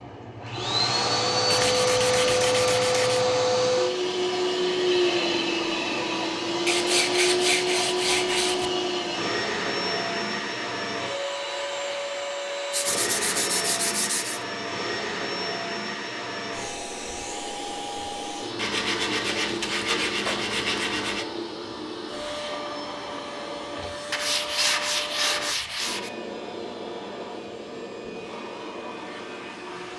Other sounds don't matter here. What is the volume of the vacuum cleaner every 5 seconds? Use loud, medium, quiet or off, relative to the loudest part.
loud, loud, medium, medium, medium, quiet.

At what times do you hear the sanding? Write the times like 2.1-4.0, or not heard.
1.5-3.2, 6.7-8.7, 12.7-14.4, 18.6-21.2, 24.1-26.1.